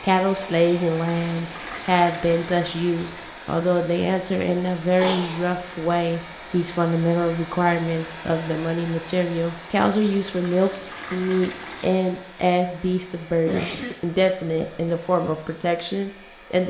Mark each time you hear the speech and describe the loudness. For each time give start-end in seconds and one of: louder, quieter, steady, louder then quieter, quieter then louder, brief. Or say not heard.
0.0-16.6 steady.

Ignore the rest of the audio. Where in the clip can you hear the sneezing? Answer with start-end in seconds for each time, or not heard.
5.0-5.5, 13.4-14.0.